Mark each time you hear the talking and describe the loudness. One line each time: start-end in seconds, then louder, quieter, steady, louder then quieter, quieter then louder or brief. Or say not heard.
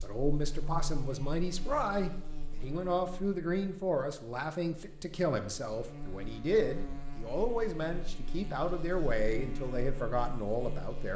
0.0-11.1 steady.